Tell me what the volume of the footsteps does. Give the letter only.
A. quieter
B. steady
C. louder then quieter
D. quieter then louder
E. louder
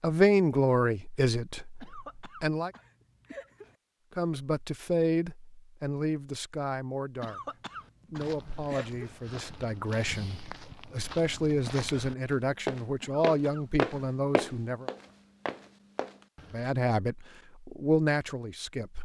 C.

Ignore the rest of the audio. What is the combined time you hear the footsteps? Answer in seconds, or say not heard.
9 s.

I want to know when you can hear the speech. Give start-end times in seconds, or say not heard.
0.0-2.7, 4.2-7.4, 8.0-14.9, 16.5-18.9.